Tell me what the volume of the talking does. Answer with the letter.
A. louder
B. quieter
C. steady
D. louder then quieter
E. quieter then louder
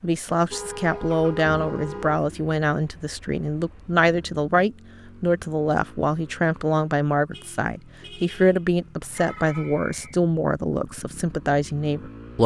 C.